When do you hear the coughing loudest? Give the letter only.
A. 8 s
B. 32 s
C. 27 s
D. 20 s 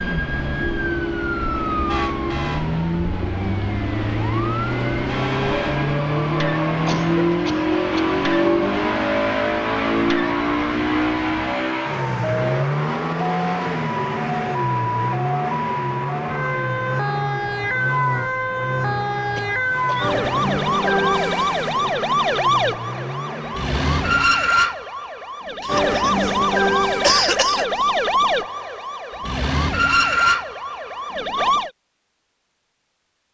C.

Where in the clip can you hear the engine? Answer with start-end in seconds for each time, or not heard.
0.0-24.2.